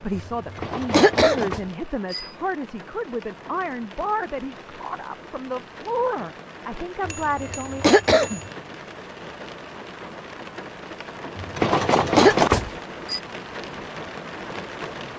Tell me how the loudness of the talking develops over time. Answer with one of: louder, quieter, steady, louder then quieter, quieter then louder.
steady.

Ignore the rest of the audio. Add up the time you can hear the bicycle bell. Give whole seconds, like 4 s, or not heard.
5 s.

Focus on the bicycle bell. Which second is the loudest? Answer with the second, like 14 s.
12 s.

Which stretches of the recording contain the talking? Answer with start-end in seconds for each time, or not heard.
0.0-7.8.